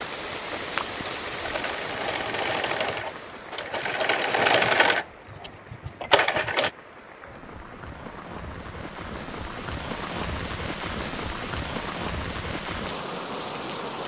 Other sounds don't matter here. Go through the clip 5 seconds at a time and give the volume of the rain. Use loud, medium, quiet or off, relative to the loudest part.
loud, medium, loud.